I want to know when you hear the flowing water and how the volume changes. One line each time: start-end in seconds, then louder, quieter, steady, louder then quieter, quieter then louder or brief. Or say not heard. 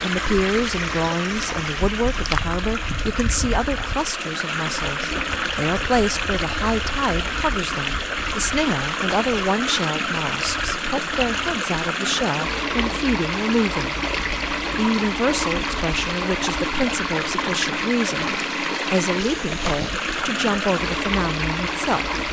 0.0-22.2 steady.